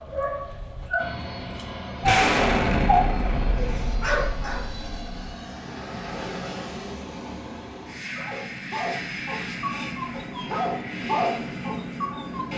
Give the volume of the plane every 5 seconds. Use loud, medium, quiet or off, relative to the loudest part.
medium, loud, loud.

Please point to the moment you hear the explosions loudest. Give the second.
2 s.